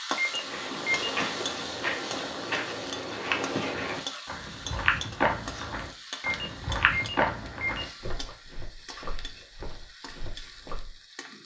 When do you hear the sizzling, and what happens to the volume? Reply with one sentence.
The sizzling can be heard from 0.0 to 11.4 s, getting quieter.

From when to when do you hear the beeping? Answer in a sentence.
The beeping can be heard from 0.1 to 1.1 s and from 6.2 to 7.9 s.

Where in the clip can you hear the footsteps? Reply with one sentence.
You can hear the footsteps from 0.3 to 10.8 s.